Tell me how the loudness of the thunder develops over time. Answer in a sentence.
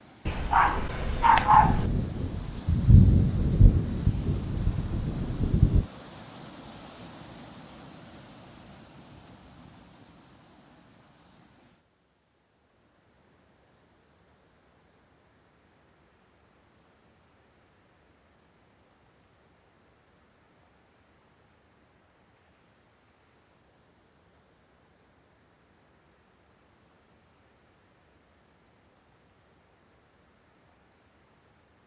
The loudness of the thunder goes up, then down.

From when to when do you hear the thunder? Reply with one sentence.
The thunder can be heard from 1.5 to 5.8 s.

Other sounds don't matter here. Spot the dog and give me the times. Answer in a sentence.
The dog can be heard from 0.2 to 1.9 s.